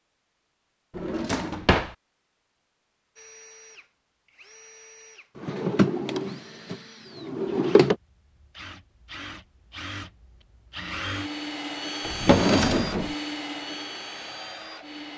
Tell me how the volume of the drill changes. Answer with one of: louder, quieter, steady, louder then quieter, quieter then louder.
louder.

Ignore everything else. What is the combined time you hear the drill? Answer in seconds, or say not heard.
12 s.